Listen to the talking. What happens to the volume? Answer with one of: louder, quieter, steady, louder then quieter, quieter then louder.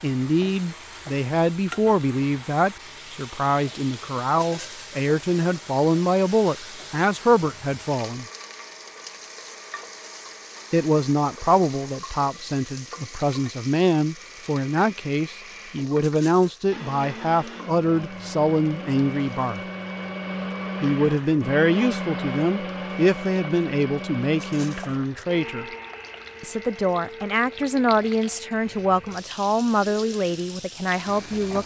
steady.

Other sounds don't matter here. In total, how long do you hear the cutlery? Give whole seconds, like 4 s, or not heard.
not heard.